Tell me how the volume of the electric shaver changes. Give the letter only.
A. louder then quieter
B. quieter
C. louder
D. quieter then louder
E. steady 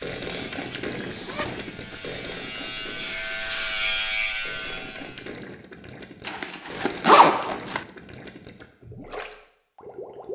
C.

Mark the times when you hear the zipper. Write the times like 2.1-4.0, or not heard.
0.5-1.7, 6.2-7.8.